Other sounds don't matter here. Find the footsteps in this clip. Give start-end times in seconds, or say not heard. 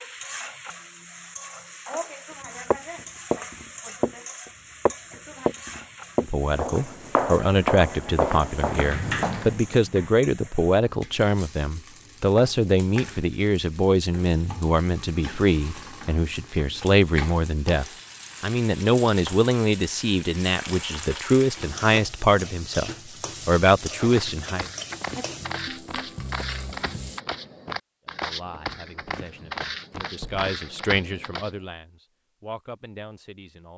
2.7-9.8, 24.0-31.5.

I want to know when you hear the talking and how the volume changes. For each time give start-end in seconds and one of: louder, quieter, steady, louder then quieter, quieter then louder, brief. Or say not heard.
6.2-24.6 steady
28.1-33.7 louder then quieter.